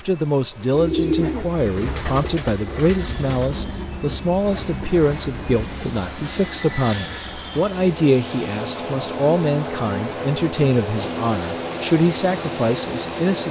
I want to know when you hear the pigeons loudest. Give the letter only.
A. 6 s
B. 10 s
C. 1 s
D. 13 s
C.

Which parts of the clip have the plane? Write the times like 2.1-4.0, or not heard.
0.0-13.4.